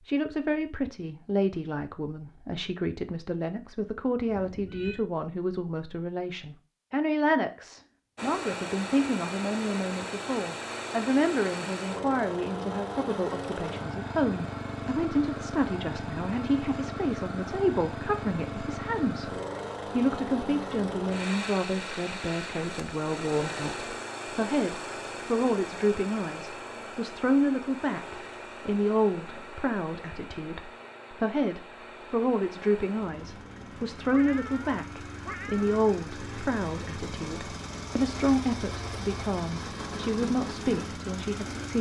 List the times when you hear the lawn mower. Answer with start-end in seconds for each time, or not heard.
8.2-41.7.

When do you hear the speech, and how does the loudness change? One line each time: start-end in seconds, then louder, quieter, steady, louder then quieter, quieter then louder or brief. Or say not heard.
0.1-41.7 steady.